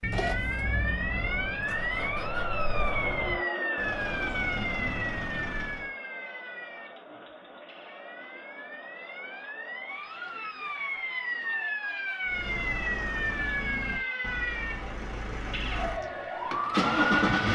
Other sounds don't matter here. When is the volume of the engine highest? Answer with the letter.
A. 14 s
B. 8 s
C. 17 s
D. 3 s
C.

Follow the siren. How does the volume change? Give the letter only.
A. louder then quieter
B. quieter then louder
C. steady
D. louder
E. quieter
B.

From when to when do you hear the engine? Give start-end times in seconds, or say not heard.
0.0-5.9, 12.2-17.5.